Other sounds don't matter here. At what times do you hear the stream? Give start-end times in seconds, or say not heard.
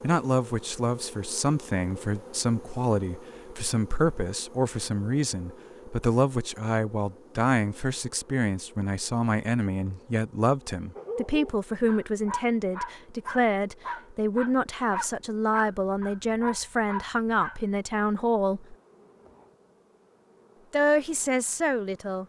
not heard.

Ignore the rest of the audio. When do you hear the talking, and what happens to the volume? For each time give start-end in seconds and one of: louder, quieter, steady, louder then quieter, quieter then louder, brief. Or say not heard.
0.0-18.8 steady
20.7-22.2 brief.